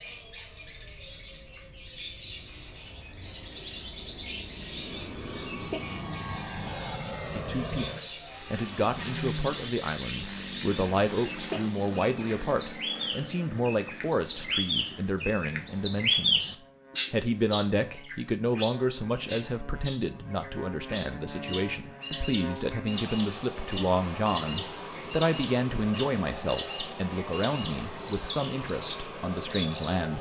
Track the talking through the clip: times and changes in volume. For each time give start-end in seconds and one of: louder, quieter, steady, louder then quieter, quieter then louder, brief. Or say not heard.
7.3-30.1 steady.